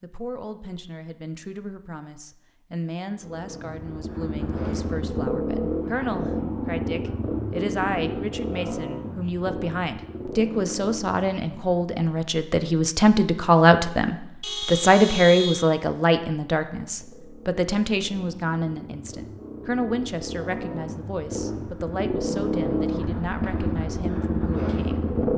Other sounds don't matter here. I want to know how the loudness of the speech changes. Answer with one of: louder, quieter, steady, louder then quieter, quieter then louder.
louder then quieter.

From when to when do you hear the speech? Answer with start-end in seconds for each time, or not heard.
0.0-25.3.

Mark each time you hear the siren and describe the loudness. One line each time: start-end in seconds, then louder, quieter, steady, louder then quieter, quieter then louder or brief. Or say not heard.
not heard.